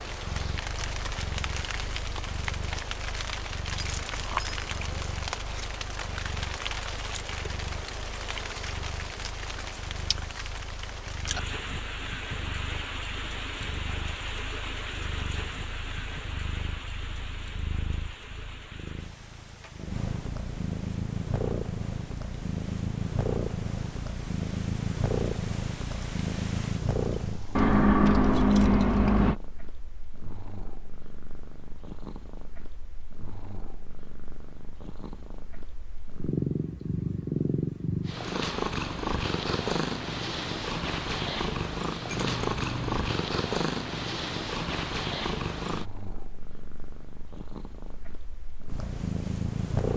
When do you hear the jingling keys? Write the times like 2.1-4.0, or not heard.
3.7-5.0, 27.6-29.4, 42.0-43.1.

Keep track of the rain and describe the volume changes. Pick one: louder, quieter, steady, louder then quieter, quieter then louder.
quieter.